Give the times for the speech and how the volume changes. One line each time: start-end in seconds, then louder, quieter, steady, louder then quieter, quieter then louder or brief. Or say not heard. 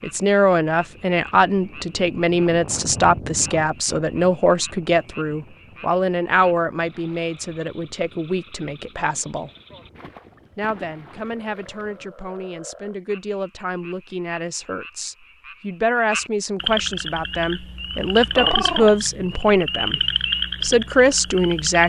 0.0-9.5 quieter
10.6-20.0 louder
20.6-21.8 brief.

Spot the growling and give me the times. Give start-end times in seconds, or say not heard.
18.4-18.9.